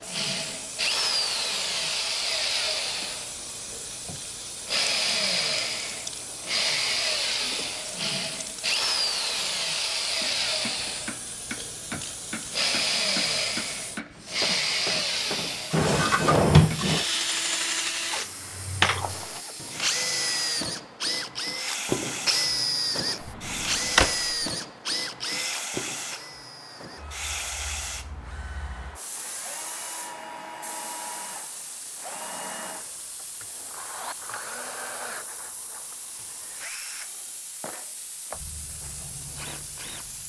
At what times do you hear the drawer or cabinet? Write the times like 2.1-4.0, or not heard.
15.7-17.1, 23.2-24.2.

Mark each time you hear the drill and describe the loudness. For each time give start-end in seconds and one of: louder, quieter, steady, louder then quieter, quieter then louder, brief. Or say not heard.
0.0-40.2 quieter.